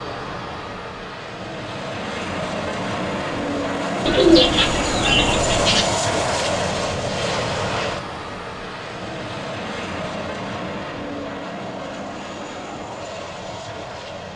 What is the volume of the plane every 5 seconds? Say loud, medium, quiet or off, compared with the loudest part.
loud, loud, medium.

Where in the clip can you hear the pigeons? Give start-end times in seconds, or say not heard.
4.0-5.8.